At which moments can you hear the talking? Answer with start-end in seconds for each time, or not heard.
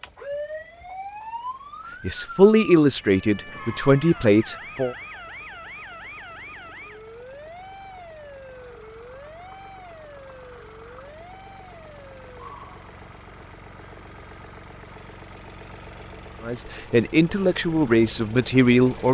2.0-5.0, 16.4-19.0.